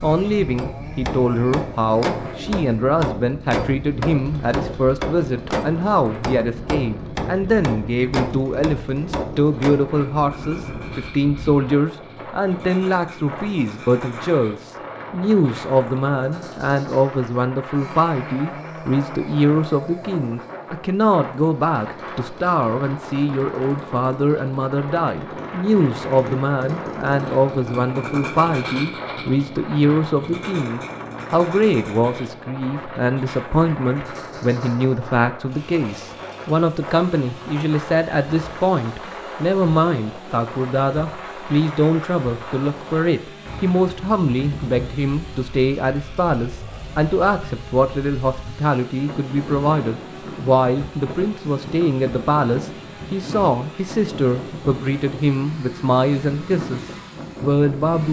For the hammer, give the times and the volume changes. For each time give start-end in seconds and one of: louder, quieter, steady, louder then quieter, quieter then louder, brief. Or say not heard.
0.6-9.8 steady.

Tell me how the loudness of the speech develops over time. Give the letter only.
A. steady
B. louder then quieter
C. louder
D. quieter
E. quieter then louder
A.